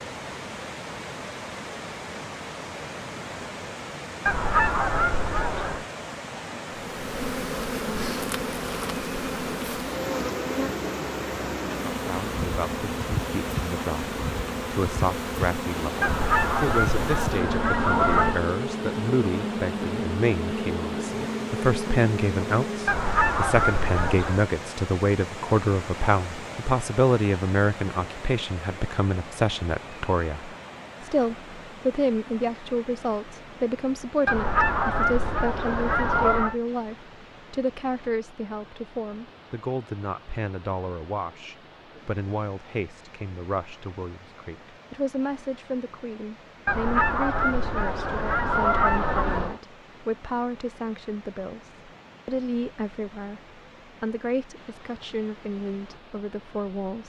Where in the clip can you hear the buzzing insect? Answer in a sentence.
You can hear the buzzing insect from 6.8 to 23.0 s.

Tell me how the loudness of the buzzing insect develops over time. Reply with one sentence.
The volume of the buzzing insect stays about the same.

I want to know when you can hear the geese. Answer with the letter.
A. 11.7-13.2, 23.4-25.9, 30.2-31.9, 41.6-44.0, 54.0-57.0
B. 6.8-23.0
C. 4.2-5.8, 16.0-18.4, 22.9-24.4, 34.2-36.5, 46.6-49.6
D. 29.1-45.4
C.